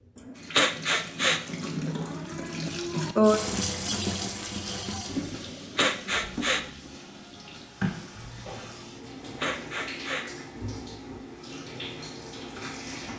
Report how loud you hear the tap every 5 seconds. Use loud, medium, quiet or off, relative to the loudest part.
loud, medium, medium.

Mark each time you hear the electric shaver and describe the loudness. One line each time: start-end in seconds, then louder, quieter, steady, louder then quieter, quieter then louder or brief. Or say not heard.
not heard.